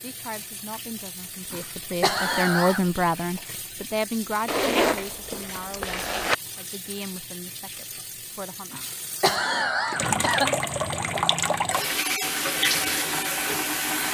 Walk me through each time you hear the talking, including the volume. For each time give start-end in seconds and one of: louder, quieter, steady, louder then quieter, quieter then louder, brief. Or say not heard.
0.0-8.9 louder then quieter.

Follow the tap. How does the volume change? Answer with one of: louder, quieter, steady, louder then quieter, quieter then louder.
louder.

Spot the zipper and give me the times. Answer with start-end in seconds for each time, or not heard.
4.5-6.3.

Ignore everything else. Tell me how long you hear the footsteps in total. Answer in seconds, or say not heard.
not heard.